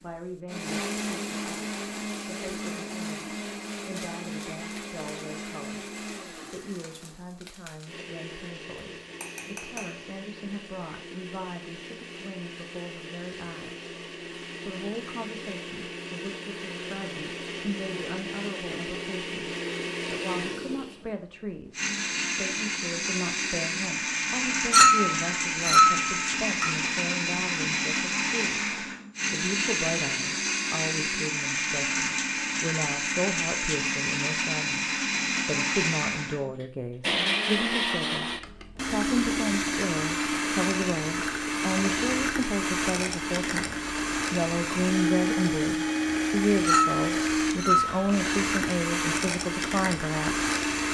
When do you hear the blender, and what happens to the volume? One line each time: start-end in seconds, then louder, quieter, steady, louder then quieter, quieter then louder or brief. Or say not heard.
0.0-50.8 louder.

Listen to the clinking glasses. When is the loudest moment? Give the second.
25 s.